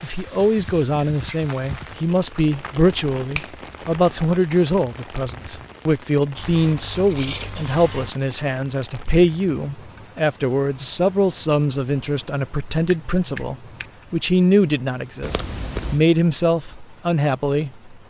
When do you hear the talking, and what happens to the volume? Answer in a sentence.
You can hear the talking from 0.0 to 17.9 s, at a steady volume.